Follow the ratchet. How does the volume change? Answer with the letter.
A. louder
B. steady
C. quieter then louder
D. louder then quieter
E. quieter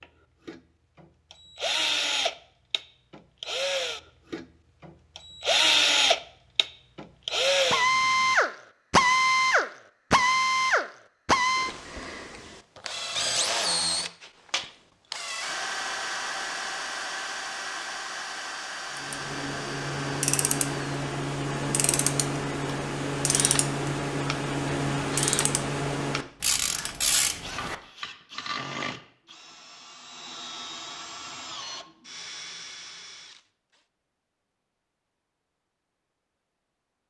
B.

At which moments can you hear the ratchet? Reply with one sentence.
You can hear the ratchet from 18.9 to 27.8 s.